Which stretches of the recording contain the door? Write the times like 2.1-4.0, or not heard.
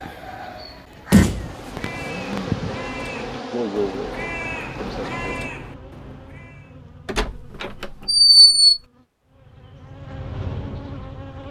1.1-2.4, 7.0-8.8.